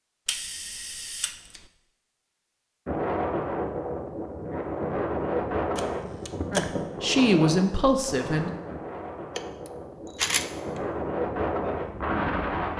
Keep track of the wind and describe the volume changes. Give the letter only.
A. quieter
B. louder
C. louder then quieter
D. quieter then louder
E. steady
D.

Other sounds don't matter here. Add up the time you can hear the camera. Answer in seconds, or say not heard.
4 s.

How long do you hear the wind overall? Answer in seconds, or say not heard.
10 s.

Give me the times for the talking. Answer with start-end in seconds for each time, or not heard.
6.5-8.5.